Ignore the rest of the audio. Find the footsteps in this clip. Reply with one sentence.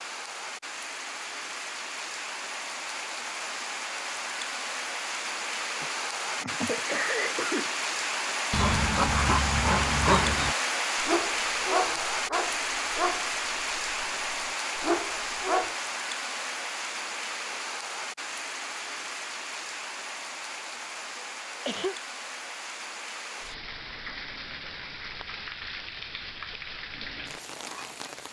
The footsteps can't be heard in this clip.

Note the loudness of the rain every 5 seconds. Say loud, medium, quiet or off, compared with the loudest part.
medium, loud, loud, medium, medium, medium.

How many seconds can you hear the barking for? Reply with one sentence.
You can hear the barking for 7 seconds altogether.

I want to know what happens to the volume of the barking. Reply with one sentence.
The loudness of the barking goes down.